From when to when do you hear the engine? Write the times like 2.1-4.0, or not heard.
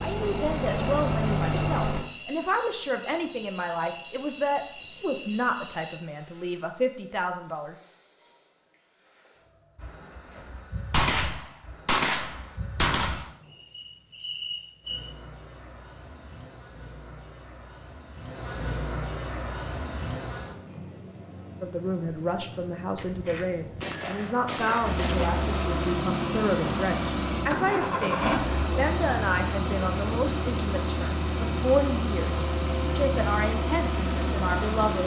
0.0-2.1, 24.8-35.0.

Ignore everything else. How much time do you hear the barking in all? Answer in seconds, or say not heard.
not heard.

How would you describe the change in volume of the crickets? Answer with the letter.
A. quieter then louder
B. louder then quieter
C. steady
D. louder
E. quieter
D.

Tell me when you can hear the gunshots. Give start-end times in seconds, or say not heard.
10.9-13.2, 22.9-25.4.